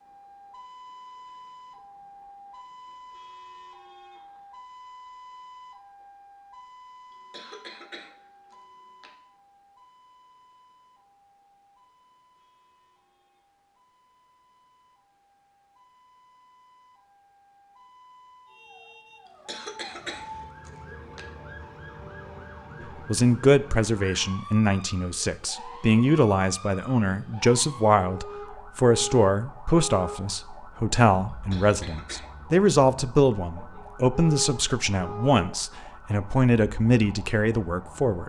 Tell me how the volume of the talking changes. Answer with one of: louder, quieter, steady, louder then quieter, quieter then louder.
steady.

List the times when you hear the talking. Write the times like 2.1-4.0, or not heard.
23.1-38.2.